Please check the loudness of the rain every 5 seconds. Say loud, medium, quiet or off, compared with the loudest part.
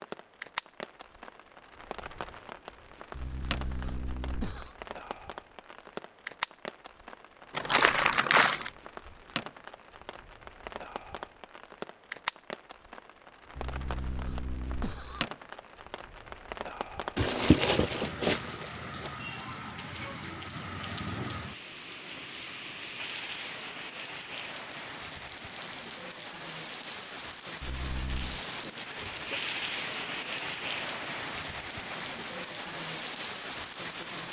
medium, medium, medium, loud, loud, loud, loud.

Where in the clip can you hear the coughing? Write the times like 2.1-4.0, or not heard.
3.1-4.8, 13.6-15.2, 27.6-28.4.